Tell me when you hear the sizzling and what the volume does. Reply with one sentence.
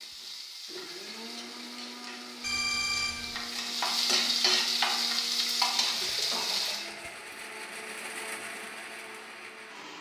The sizzling can be heard from 0.0 to 6.9 s, getting louder.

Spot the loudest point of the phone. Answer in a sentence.
The volume of the phone peaks at 3 seconds.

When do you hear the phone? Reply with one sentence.
The phone can be heard from 2.4 to 3.4 s and from 6.0 to 7.2 s.